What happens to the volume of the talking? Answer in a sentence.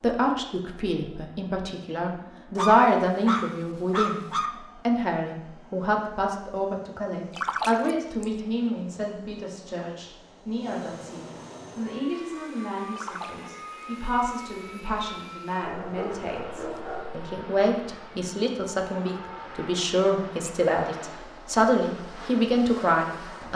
The loudness of the talking goes down, then up.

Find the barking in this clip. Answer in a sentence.
The barking can be heard from 2.5 to 4.5 s and from 15.6 to 17.3 s.